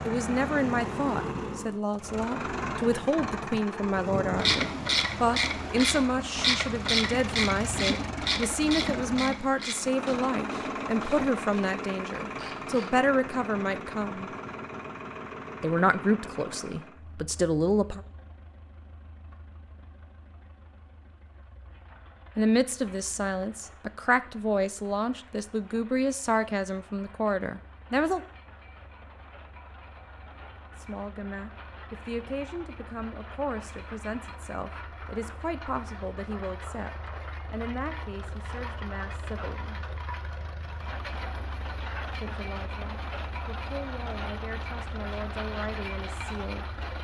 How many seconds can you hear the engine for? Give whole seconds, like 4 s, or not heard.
47 s.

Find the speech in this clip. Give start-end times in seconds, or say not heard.
0.1-14.3, 15.6-18.0, 22.4-28.2, 30.8-39.8, 42.1-47.0.